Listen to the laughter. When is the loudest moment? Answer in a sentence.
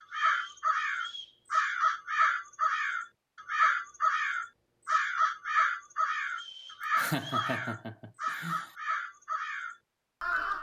The loudest moment of the laughter is at 7 seconds.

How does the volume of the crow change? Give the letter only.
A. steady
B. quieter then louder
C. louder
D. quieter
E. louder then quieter
D.